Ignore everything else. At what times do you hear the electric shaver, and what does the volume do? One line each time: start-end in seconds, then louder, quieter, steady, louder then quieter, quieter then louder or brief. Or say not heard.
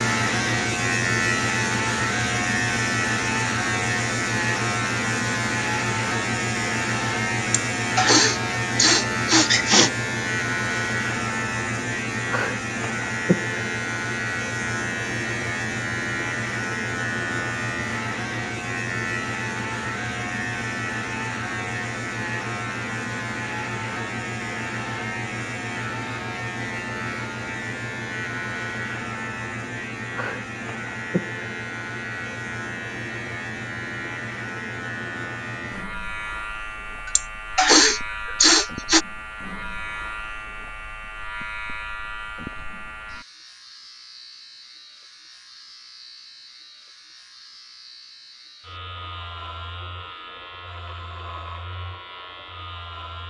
0.0-53.2 quieter.